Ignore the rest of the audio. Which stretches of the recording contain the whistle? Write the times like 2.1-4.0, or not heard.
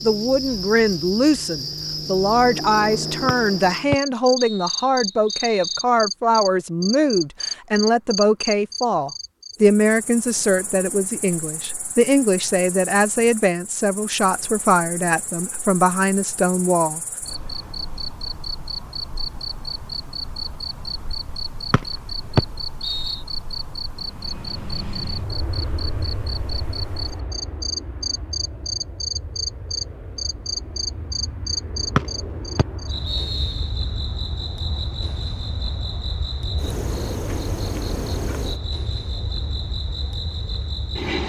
3.2-5.8, 21.7-23.2, 31.9-33.5.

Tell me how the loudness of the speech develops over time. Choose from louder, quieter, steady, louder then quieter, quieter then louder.
steady.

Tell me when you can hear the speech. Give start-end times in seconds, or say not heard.
0.0-17.0.